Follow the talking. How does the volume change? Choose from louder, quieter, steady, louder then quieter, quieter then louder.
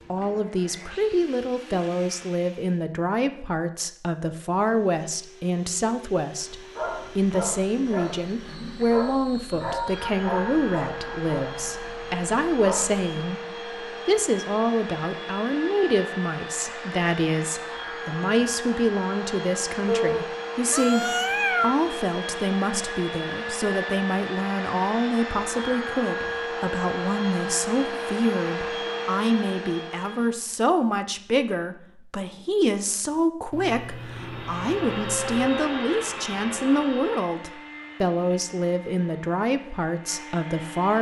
steady.